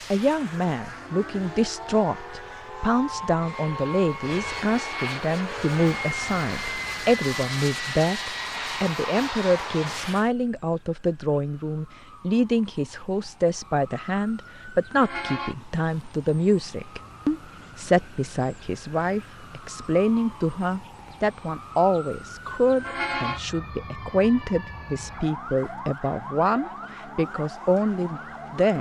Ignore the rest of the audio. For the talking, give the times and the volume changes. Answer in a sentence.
You can hear the talking from 0.1 to 28.7 s, at a steady volume.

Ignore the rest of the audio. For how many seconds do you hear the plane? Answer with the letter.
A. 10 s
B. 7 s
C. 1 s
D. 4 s
A.